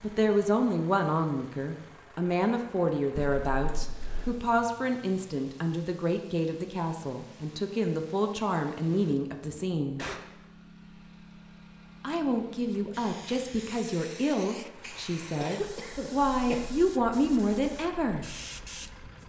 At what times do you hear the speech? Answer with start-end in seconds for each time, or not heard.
0.0-10.0, 12.0-18.2.